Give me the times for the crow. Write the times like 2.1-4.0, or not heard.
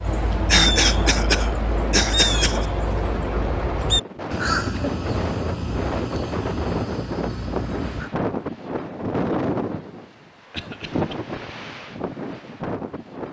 0.0-8.1.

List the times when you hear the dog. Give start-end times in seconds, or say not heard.
not heard.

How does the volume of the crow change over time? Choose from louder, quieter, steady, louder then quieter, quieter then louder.
quieter.